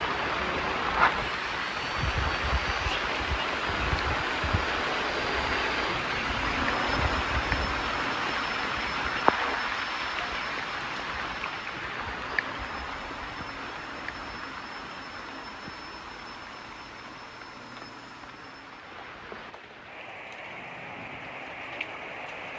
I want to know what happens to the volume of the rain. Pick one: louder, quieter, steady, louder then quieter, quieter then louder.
quieter.